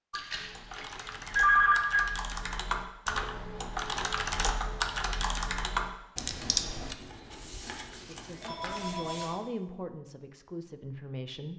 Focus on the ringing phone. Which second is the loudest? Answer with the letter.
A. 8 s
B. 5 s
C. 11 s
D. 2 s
D.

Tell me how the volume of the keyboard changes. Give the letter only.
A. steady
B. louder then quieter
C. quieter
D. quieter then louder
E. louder
E.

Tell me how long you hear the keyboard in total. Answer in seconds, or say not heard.
7 s.